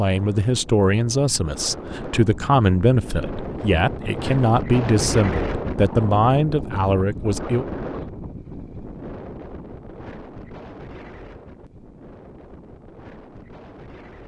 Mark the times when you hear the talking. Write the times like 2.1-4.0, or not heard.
0.0-7.7.